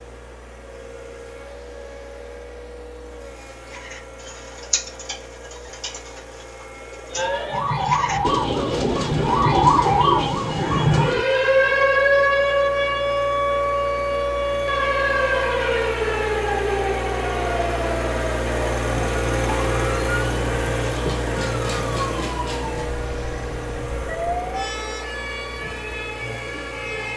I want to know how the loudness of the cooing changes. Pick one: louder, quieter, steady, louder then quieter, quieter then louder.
quieter then louder.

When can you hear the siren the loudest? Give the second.
12 s.